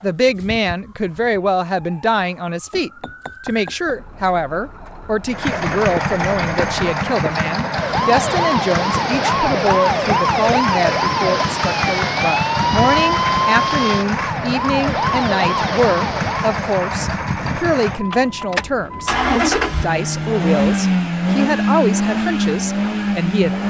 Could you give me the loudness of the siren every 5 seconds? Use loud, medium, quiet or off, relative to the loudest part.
quiet, loud, loud, loud, off.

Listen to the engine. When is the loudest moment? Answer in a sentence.
The volume of the engine peaks at 21 seconds.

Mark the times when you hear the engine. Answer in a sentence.
You can hear the engine from 5.2 to 23.6 s.